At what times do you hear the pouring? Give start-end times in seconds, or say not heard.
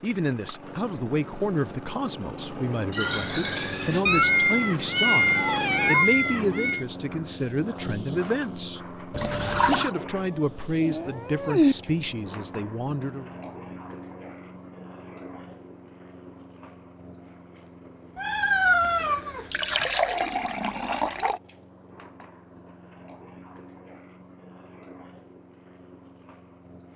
2.9-4.0, 9.1-9.9, 19.5-21.4.